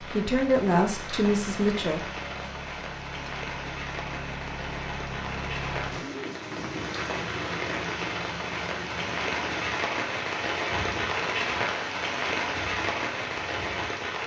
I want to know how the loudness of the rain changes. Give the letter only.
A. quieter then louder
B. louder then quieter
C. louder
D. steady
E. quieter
C.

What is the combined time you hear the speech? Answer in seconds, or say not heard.
2 s.